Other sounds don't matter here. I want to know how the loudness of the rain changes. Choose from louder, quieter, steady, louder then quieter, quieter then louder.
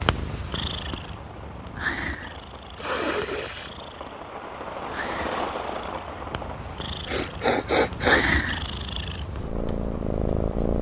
louder then quieter.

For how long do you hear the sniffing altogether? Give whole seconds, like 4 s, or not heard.
2 s.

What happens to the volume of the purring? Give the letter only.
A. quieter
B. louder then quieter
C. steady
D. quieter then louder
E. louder
D.